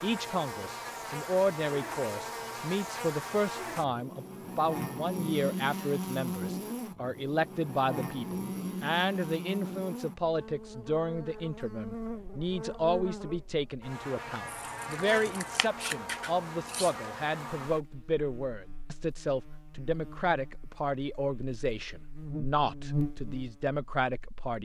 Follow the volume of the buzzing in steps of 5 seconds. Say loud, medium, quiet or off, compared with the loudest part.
loud, loud, medium, medium, loud.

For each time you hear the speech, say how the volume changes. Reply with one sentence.
The speech can be heard from 0.0 to 24.5 s, at a steady volume.